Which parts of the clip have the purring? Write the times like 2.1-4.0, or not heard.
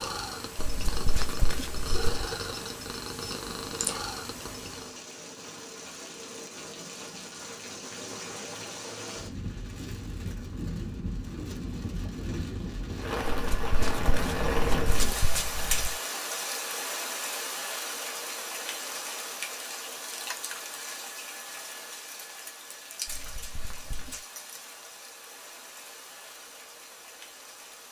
0.0-5.0.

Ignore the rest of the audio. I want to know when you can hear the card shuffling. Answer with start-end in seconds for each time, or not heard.
0.6-2.2, 13.2-16.0, 23.1-24.2.